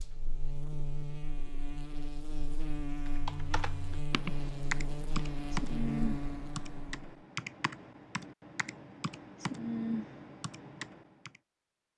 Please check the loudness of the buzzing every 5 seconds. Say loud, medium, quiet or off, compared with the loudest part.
loud, loud, off.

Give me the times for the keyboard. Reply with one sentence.
You can hear the keyboard from 3.0 to 11.4 s.